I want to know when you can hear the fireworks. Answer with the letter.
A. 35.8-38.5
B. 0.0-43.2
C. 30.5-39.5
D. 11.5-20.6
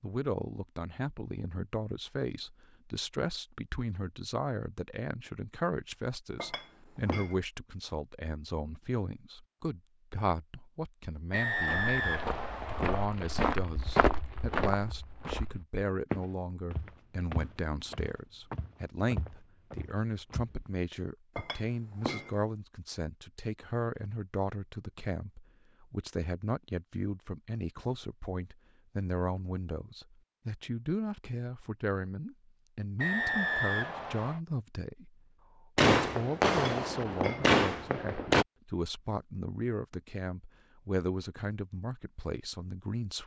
A.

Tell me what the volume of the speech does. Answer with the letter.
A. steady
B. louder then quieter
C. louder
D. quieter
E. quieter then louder
A.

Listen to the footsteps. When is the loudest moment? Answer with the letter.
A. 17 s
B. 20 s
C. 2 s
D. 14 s
D.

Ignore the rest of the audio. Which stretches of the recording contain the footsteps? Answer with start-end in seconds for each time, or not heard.
11.5-20.6.